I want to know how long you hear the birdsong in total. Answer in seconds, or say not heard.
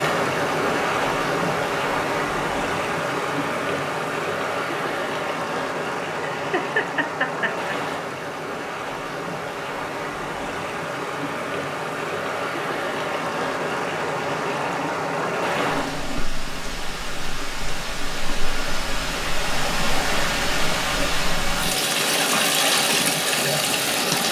not heard.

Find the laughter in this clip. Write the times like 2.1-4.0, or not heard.
6.3-7.7.